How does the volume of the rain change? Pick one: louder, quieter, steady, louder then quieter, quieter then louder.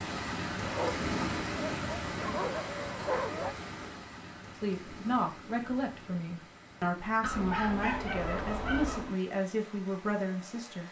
quieter.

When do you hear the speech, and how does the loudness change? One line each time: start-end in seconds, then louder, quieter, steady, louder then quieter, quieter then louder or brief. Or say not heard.
4.5-10.8 steady.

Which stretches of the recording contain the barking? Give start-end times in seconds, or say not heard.
0.6-3.5, 7.2-9.2.